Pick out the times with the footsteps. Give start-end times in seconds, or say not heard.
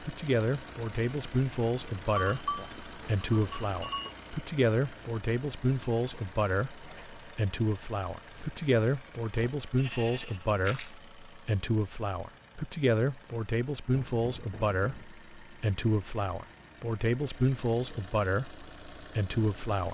not heard.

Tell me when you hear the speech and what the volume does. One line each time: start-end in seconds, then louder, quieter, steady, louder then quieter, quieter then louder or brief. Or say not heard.
0.0-19.8 steady.